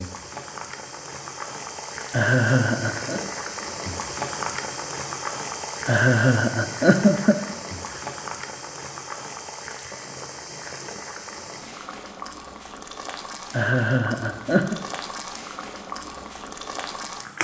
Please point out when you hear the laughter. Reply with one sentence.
You can hear the laughter from 2.1 to 3.2 s, from 5.8 to 8.0 s and from 13.5 to 14.8 s.